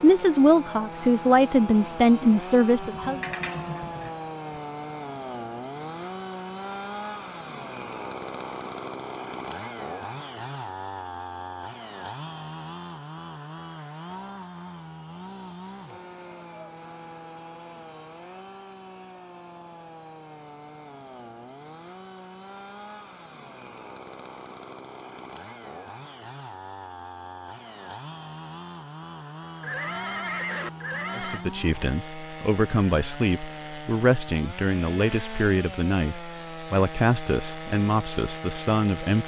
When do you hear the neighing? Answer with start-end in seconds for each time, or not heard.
2.8-4.1, 29.6-31.4.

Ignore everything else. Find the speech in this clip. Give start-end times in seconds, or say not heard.
0.0-3.2, 31.1-39.2.